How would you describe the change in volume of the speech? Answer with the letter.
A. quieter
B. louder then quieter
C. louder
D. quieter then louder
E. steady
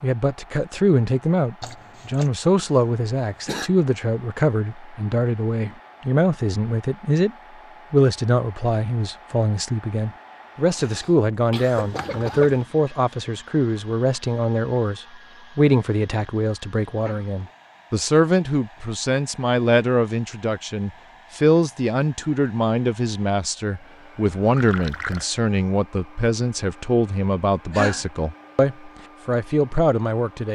E.